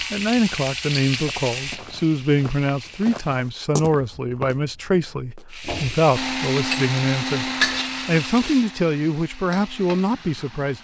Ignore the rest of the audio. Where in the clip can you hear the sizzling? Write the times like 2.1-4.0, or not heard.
0.0-3.4, 5.5-10.7.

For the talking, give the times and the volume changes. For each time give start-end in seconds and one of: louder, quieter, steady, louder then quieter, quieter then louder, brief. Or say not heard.
0.0-10.7 steady.